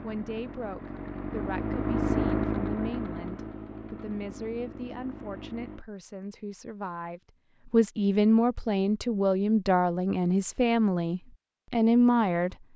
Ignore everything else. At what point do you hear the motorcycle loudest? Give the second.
2 s.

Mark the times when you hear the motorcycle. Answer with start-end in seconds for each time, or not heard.
0.0-5.8.